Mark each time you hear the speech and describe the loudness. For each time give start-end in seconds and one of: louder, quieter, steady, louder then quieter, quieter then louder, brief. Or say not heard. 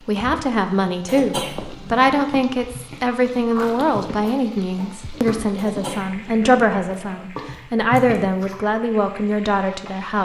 0.1-10.1 steady.